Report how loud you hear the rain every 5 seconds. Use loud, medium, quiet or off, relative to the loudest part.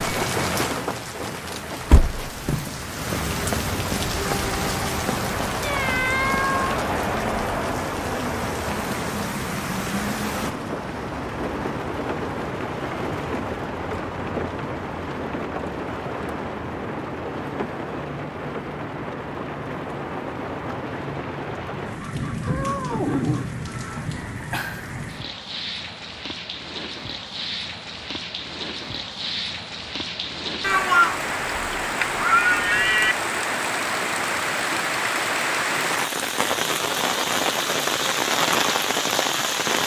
loud, loud, medium, medium, medium, medium, loud, loud.